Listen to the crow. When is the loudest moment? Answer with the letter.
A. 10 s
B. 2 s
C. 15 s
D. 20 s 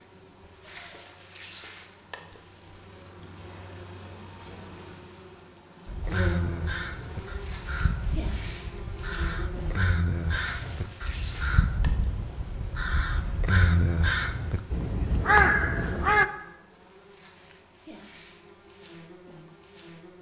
C.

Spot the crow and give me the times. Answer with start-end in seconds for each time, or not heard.
5.8-16.2.